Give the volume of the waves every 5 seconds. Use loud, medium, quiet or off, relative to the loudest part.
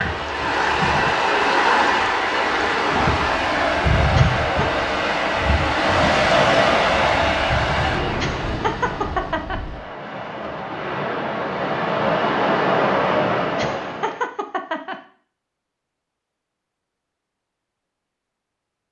loud, loud, loud, off.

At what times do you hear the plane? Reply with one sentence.
The plane can't be heard in this clip.